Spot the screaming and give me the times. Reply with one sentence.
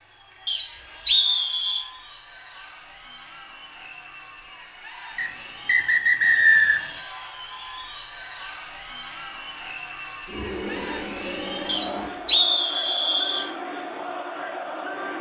You can hear the screaming from 10.2 to 12.1 s.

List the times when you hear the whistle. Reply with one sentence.
The whistle can be heard from 0.5 to 1.9 s, from 5.2 to 6.9 s and from 11.7 to 13.5 s.